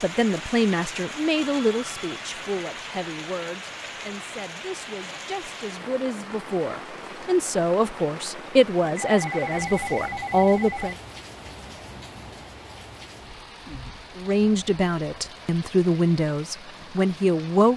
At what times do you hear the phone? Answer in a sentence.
The phone can be heard from 1.4 to 2.3 s and from 8.9 to 10.9 s.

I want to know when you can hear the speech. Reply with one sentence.
The speech can be heard from 0.0 to 10.9 s and from 14.2 to 17.7 s.